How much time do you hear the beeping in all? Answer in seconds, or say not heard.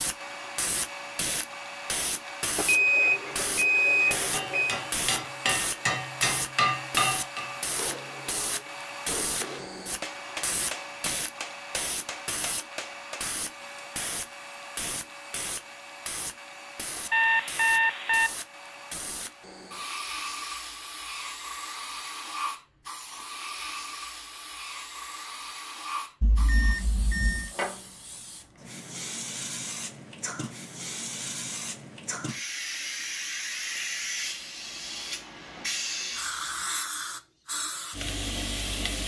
5 s.